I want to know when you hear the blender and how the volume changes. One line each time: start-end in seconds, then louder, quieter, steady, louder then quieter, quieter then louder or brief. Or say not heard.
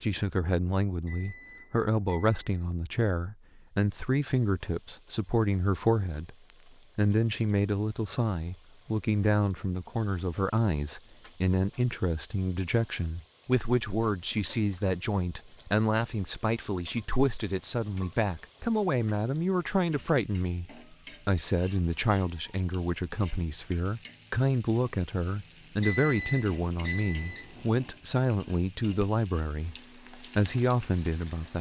not heard.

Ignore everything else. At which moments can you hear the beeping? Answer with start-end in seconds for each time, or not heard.
1.1-2.6, 25.8-27.6.